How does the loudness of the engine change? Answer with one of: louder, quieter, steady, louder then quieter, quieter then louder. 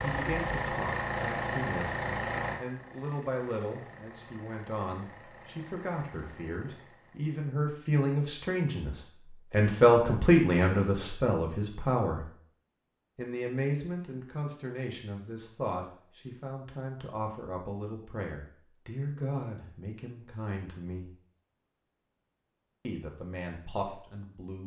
quieter.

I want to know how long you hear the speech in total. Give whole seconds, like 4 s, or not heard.
22 s.